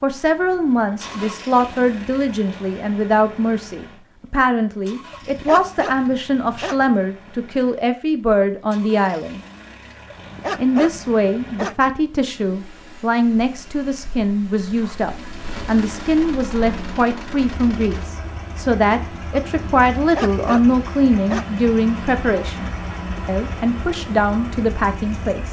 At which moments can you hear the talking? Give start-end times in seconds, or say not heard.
0.0-9.4, 10.6-25.4.